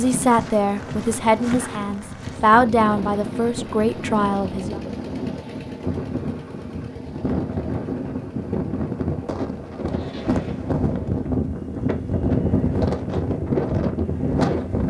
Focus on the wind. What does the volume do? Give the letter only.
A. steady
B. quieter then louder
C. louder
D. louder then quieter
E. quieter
C.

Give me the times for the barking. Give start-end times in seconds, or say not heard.
not heard.